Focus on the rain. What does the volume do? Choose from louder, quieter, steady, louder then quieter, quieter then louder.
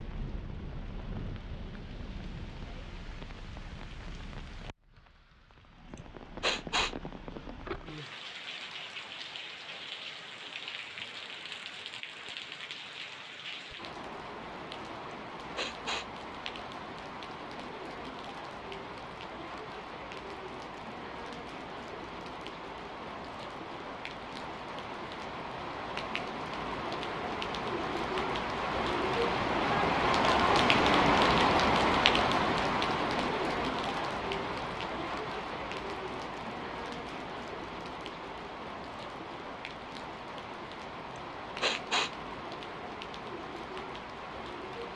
louder then quieter.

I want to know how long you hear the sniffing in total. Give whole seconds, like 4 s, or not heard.
3 s.